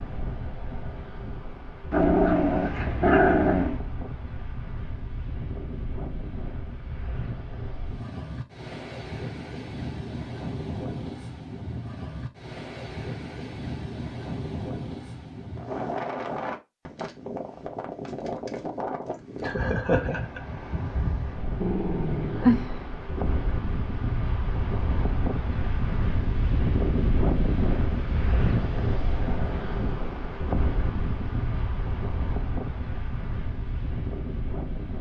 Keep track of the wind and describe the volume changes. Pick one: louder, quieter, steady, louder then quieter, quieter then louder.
louder.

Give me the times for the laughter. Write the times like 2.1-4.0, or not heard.
19.4-20.4.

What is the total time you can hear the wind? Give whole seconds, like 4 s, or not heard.
35 s.